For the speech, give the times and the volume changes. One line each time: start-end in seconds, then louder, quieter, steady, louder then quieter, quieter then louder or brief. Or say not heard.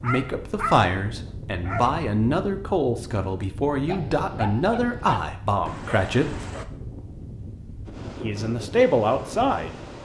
0.0-6.3 steady
8.2-10.0 brief.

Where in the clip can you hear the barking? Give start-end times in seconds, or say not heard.
0.0-2.0, 3.9-6.7.